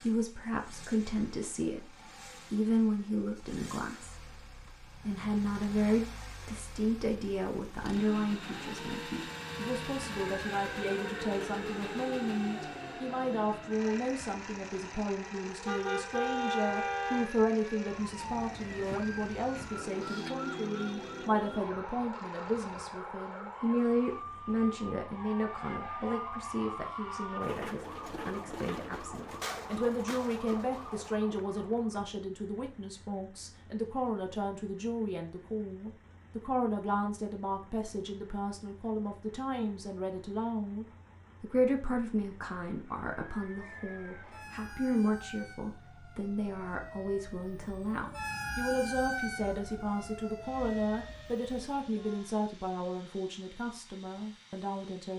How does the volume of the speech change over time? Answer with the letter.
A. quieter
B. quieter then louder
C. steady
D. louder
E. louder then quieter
C.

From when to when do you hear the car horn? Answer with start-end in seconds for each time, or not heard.
15.7-17.3.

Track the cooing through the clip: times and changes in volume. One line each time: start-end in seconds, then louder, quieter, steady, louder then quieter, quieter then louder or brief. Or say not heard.
not heard.